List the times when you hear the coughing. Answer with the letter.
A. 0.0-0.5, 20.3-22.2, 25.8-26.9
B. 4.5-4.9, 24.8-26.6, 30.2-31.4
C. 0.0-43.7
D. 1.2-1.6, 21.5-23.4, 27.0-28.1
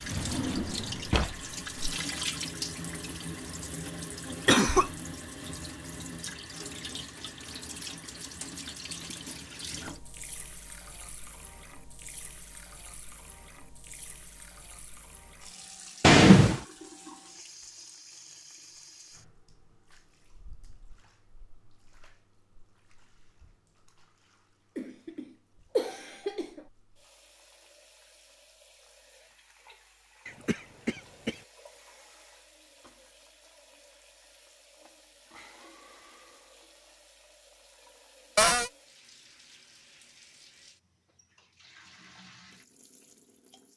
B.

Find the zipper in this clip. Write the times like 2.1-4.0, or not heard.
not heard.